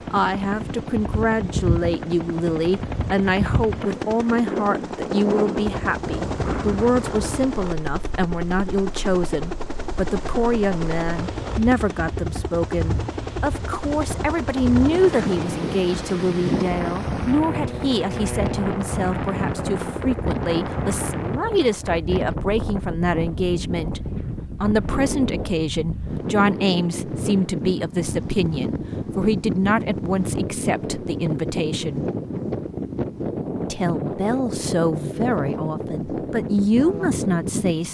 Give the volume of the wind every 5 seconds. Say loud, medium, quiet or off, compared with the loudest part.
loud, loud, medium, loud, loud, loud, loud, loud.